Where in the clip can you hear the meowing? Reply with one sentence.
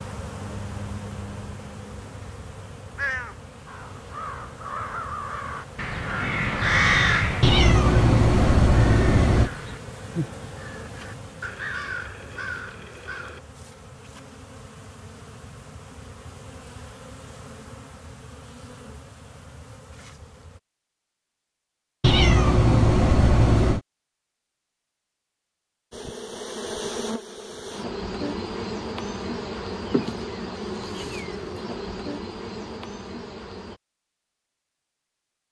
You can hear the meowing from 7.4 to 9.5 s and from 22.0 to 23.8 s.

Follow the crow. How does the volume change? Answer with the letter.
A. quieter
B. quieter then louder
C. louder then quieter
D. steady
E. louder
C.